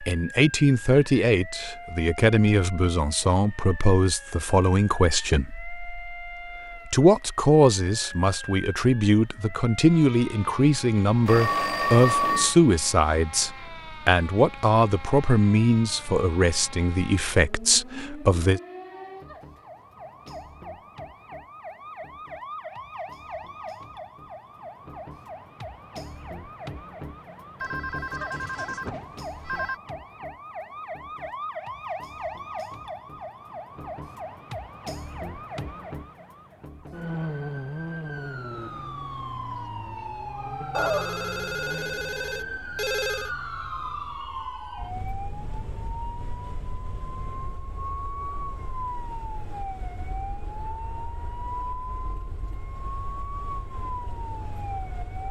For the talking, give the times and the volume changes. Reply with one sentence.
The talking can be heard from 0.0 to 18.6 s, at a steady volume.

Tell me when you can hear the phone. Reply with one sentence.
You can hear the phone from 11.2 to 12.6 s, from 27.6 to 29.8 s and from 40.7 to 43.3 s.